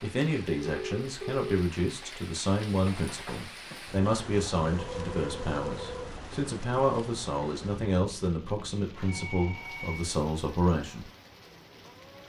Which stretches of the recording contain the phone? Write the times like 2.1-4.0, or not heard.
0.6-1.4, 4.8-6.2, 8.9-10.1.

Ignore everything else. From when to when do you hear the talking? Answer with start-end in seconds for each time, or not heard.
0.0-11.1.